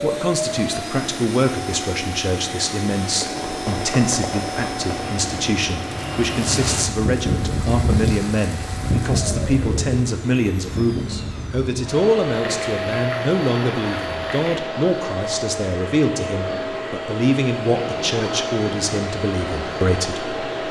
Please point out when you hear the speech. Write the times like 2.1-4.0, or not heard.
0.0-20.4.